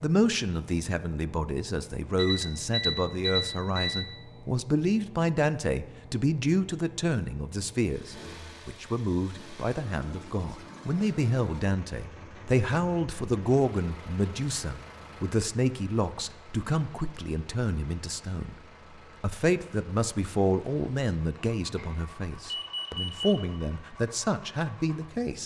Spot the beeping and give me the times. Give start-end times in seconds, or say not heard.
2.1-4.1, 21.8-23.3.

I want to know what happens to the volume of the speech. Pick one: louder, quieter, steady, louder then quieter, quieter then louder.
steady.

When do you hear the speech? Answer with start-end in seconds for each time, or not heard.
0.0-18.6, 19.2-25.4.